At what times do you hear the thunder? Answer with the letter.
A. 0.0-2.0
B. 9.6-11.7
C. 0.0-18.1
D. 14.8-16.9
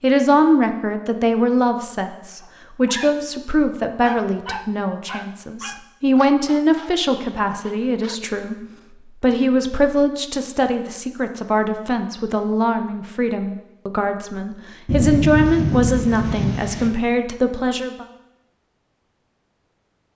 D.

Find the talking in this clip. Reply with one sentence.
The talking can be heard from 0.0 to 18.1 s.